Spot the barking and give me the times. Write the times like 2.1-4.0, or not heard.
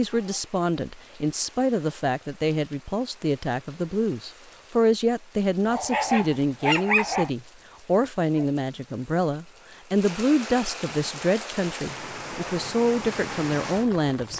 5.7-7.3.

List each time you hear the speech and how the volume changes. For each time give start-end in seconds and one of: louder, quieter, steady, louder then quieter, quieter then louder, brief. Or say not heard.
0.0-14.3 steady.